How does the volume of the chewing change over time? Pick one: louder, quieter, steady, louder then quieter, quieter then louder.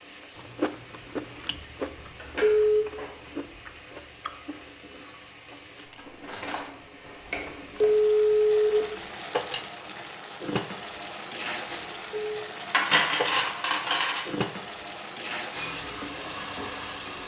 quieter.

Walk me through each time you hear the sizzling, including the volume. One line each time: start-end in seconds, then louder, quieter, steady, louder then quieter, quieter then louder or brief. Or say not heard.
0.0-17.2 louder.